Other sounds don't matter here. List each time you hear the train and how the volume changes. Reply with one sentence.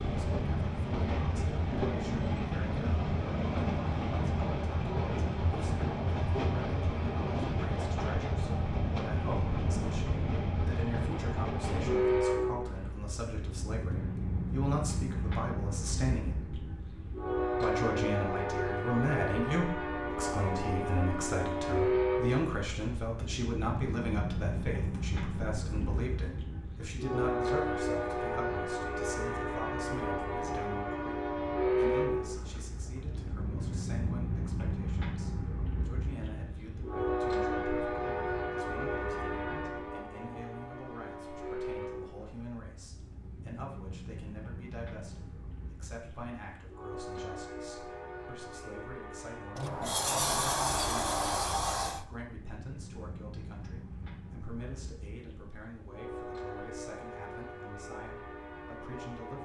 You can hear the train from 0.0 to 59.4 s, getting quieter.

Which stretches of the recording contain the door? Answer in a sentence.
The door can be heard from 49.5 to 52.0 s.